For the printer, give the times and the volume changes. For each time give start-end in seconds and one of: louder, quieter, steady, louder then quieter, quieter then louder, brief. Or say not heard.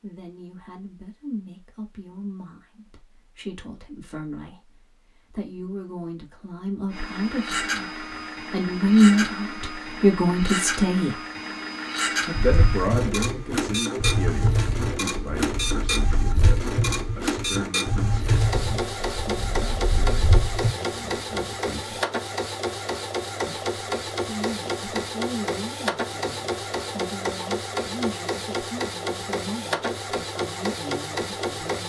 6.9-31.8 steady.